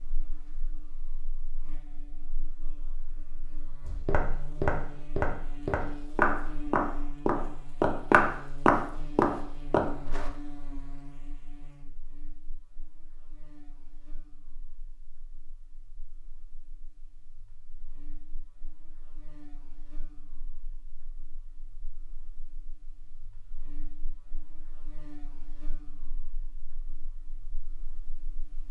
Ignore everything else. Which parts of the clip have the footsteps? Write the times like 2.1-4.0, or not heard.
3.8-10.3.